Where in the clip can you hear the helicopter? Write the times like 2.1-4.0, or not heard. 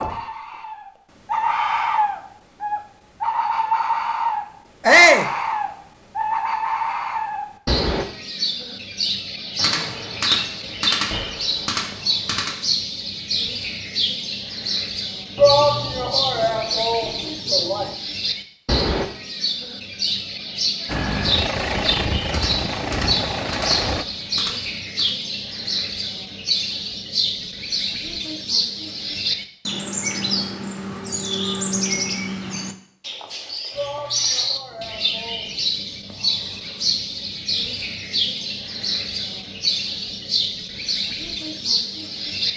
20.9-24.1.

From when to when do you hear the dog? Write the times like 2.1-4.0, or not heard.
not heard.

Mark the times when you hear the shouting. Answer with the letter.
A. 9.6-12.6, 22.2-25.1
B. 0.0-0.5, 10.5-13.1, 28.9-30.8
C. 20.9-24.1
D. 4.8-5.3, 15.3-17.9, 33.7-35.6
D.